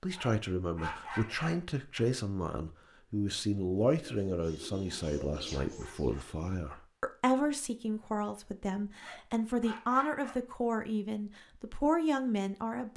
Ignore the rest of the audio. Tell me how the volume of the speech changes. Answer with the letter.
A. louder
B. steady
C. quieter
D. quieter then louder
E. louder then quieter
B.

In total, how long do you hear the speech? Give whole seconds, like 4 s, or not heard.
13 s.